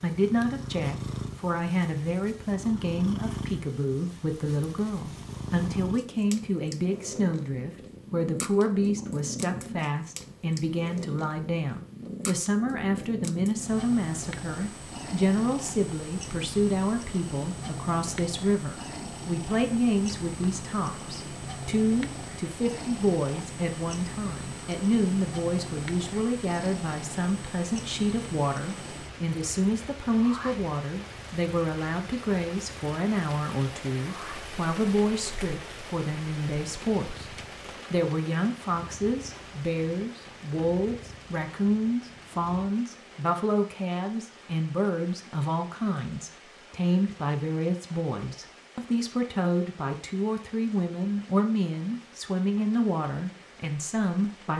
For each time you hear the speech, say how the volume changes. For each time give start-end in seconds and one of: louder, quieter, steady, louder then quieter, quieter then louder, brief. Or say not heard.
0.0-37.2 steady
37.9-54.5 steady.